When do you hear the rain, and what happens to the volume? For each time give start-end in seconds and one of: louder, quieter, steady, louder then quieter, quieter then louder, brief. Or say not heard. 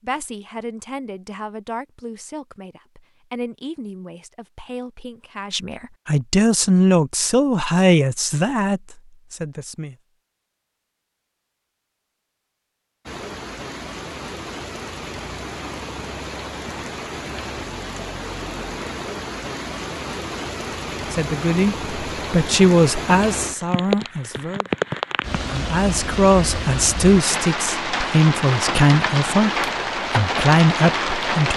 13.1-31.5 louder.